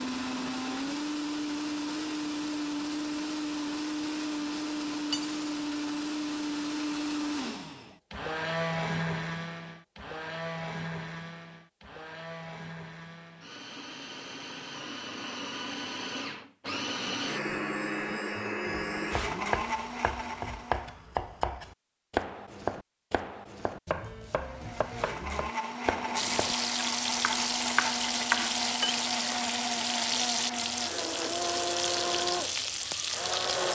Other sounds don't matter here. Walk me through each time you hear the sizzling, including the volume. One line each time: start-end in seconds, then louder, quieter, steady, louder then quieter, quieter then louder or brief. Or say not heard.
26.1-33.7 steady.